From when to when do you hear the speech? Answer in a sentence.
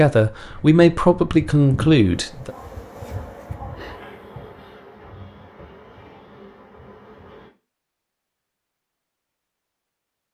The speech can be heard from 0.0 to 2.5 s.